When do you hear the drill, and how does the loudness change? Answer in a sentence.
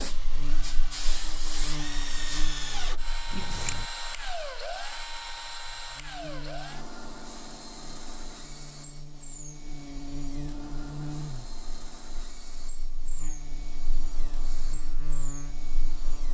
The drill can be heard from 0.0 to 16.3 s, getting quieter.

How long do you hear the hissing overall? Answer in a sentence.
The hissing can be heard for 4 seconds in total.